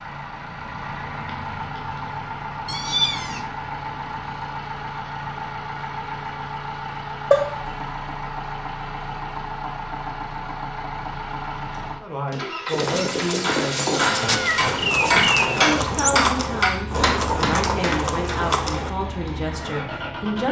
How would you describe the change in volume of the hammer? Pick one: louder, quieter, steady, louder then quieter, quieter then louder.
louder then quieter.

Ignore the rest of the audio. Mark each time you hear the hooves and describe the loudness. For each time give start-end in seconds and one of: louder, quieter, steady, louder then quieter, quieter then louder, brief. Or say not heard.
12.7-18.9 steady.